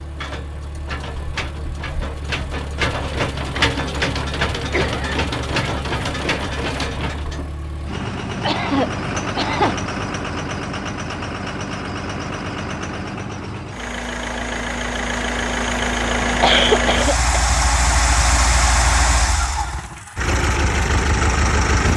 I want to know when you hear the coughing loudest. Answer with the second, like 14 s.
17 s.